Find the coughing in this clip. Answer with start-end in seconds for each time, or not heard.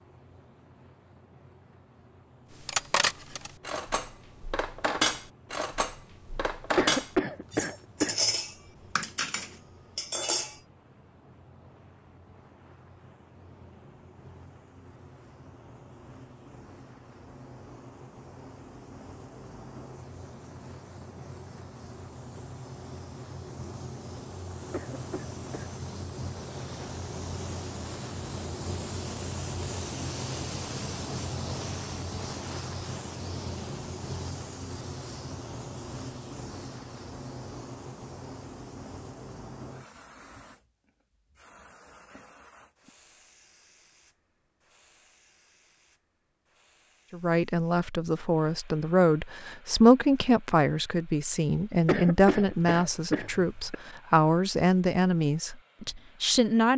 6.8-8.3, 24.7-25.8, 51.9-53.8.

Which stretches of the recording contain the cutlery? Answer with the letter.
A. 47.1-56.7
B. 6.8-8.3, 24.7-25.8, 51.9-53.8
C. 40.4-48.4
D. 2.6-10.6
D.